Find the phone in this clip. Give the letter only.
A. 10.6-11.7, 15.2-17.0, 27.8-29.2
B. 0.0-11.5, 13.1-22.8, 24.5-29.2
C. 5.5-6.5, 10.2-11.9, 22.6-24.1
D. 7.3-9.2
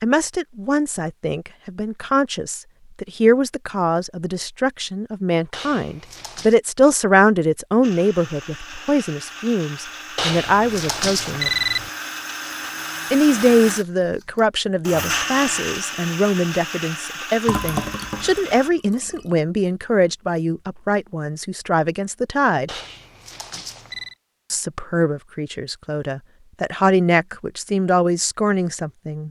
C.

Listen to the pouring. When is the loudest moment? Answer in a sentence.
The volume of the pouring peaks at 18 seconds.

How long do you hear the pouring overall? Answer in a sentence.
The pouring can be heard for 2 seconds in total.